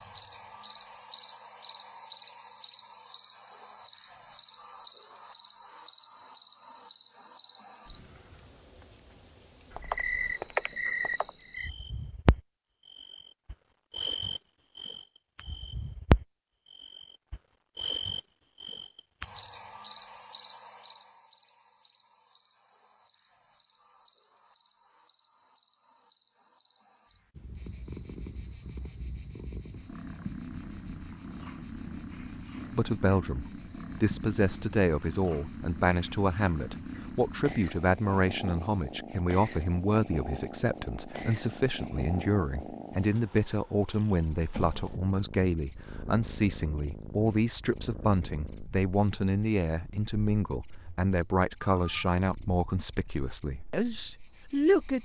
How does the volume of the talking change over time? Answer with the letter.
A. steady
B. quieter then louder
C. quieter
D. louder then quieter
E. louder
A.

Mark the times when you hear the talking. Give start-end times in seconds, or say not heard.
32.7-55.0.